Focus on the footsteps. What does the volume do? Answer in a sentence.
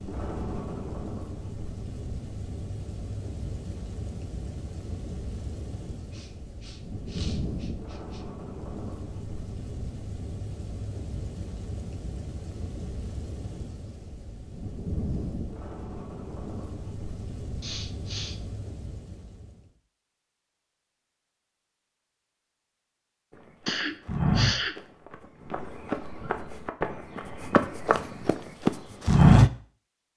The loudness of the footsteps goes down, then up.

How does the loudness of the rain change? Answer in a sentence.
The loudness of the rain stays about the same.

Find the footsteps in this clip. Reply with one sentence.
You can hear the footsteps from 23.6 to 29.5 s.